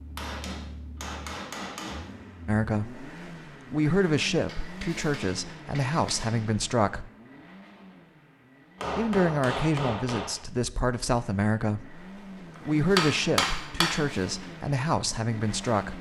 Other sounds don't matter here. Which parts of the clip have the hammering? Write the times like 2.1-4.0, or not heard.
0.1-2.1, 4.5-6.4, 8.8-10.4, 12.6-14.0.